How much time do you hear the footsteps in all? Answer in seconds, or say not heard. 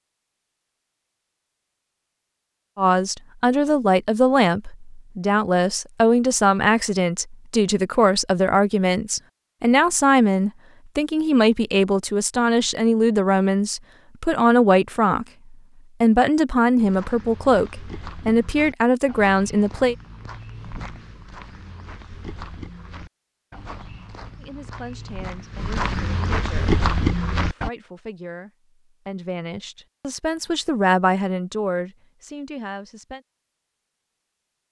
11 s.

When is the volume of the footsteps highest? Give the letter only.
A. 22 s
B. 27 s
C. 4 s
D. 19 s
B.